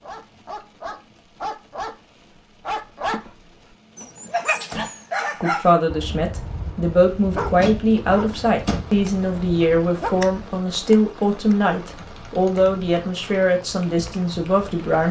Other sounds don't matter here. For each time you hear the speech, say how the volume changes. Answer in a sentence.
You can hear the speech from 5.4 to 15.0 s, at a steady volume.